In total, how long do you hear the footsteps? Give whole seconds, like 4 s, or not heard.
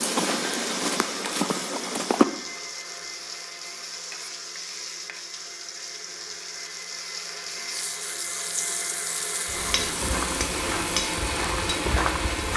5 s.